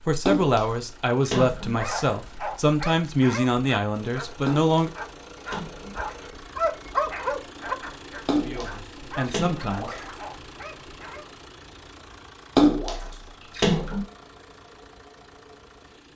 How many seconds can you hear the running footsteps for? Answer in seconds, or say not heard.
not heard.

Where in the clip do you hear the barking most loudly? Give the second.
7 s.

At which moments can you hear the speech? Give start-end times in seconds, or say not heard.
0.0-4.9, 8.4-9.9.